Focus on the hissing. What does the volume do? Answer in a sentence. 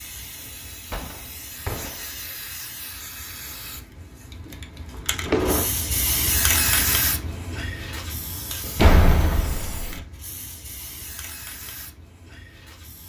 The volume of the hissing goes up, then down.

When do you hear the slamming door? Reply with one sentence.
The slamming door can be heard from 0.9 to 2.0 s, from 4.5 to 5.8 s and from 8.8 to 10.1 s.